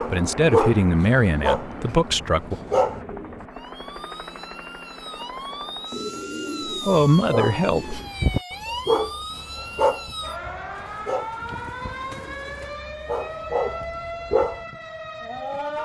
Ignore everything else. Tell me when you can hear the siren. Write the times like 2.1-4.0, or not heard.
3.5-15.8.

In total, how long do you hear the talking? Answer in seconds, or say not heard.
4 s.